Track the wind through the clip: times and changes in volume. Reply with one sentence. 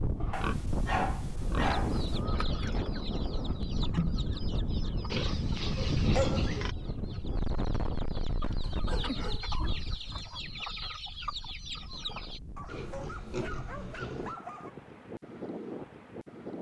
The wind can be heard from 0.0 to 16.5 s, getting quieter then louder.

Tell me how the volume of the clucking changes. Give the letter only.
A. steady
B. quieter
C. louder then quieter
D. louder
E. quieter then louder
E.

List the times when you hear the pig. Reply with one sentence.
You can hear the pig from 0.1 to 1.8 s, from 5.1 to 6.8 s, from 8.4 to 10.3 s and from 12.7 to 14.3 s.